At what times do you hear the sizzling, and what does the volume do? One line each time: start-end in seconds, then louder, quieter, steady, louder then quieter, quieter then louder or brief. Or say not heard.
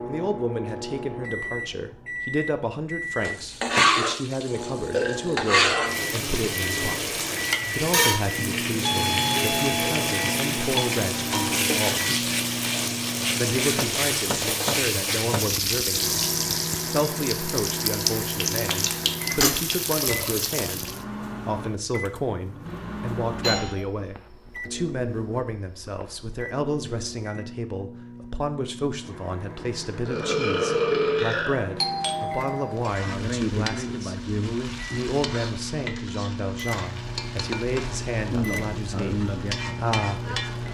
3.2-21.1 steady
32.8-40.6 quieter then louder.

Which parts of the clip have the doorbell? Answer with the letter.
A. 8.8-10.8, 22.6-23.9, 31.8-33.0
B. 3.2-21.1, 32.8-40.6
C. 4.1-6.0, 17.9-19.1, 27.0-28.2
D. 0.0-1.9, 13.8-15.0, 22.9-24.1
A.